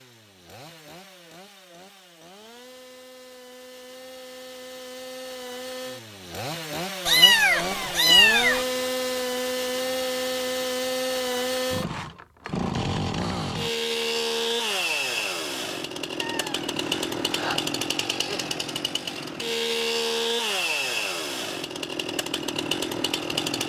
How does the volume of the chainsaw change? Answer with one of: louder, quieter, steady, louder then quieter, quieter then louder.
louder.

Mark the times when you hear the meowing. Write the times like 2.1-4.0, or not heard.
7.0-8.7, 16.2-17.6.